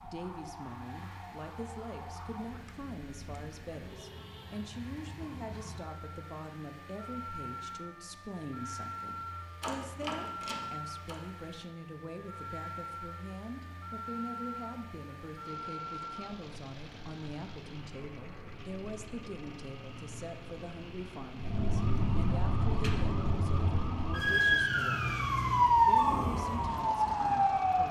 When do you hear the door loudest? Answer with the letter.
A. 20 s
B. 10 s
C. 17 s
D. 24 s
B.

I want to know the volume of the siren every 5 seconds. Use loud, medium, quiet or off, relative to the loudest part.
quiet, quiet, quiet, quiet, medium, loud.